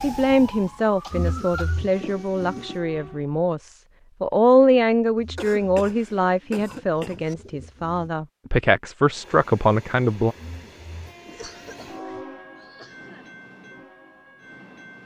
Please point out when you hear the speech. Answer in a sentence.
You can hear the speech from 0.0 to 10.3 s.